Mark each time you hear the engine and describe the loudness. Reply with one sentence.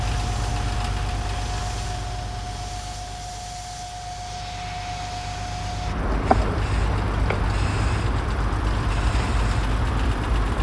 The engine can be heard from 0.0 to 10.5 s, getting quieter then louder.